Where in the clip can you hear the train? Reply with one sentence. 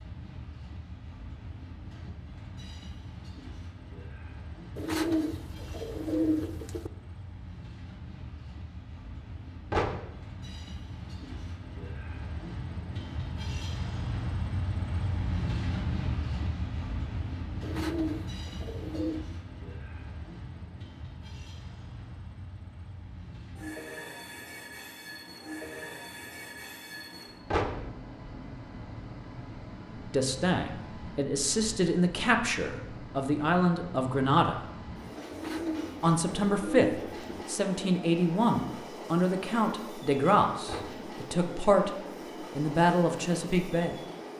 The train can be heard from 0.0 to 44.3 s.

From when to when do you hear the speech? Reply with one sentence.
The speech can be heard from 30.1 to 34.6 s, from 36.0 to 41.9 s and from 42.5 to 44.0 s.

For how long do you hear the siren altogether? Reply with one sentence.
The siren can't be heard in this clip.